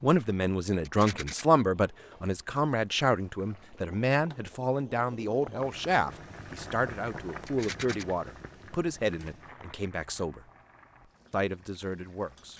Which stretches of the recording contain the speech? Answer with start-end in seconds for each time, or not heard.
0.0-10.4, 11.3-12.5.